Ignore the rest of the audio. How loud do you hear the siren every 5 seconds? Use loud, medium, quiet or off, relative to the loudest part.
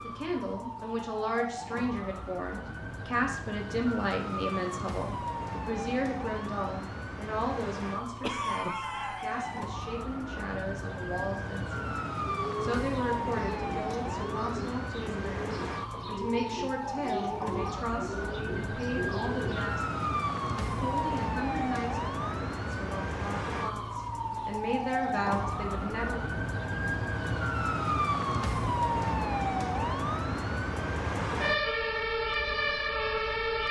medium, medium, medium, medium, loud, loud, loud.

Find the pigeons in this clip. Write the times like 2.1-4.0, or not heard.
12.2-19.8.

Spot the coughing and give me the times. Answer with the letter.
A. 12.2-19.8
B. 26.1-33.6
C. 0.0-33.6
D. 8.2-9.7
D.